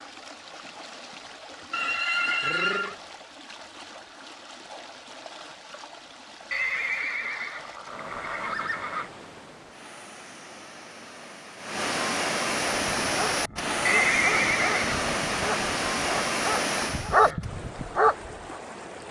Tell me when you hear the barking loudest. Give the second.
17 s.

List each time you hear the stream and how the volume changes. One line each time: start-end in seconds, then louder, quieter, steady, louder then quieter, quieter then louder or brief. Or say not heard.
0.0-19.0 louder.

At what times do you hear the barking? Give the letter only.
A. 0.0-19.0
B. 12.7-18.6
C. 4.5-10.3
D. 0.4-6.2
B.